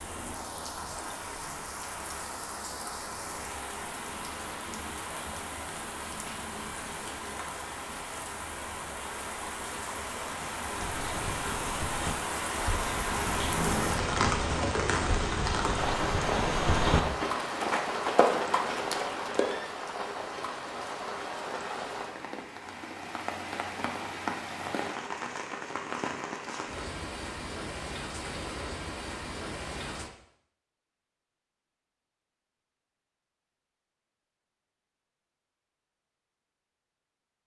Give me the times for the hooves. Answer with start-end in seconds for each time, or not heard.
10.7-19.6.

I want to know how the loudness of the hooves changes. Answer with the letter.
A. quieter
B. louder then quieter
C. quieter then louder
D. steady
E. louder
E.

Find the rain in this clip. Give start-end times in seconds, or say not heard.
0.0-30.1.